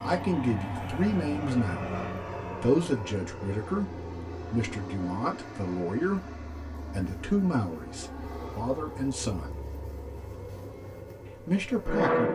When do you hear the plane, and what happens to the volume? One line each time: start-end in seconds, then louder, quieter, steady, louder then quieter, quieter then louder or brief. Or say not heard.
0.0-12.3 quieter.